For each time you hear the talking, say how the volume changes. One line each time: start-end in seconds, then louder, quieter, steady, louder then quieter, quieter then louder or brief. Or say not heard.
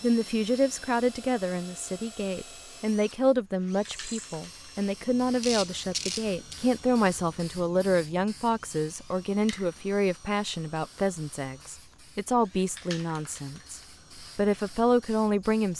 0.0-15.7 steady.